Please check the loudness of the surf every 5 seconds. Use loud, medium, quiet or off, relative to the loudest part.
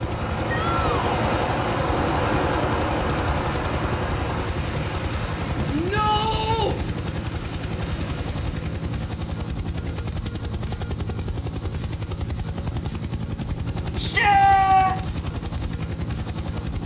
loud, medium, off, off.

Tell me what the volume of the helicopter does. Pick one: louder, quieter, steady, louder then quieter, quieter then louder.
steady.